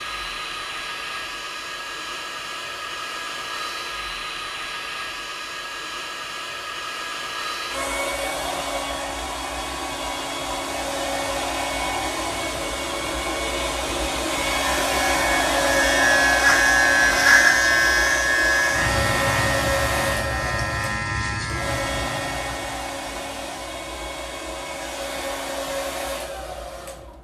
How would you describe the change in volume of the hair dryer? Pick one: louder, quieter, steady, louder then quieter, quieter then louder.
louder then quieter.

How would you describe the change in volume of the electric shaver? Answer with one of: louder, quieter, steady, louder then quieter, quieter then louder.
quieter.